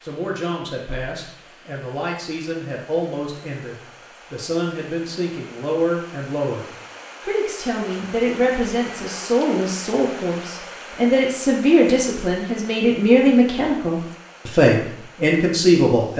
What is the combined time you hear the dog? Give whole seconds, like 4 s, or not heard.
not heard.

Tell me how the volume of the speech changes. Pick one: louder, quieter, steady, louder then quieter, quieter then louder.
louder.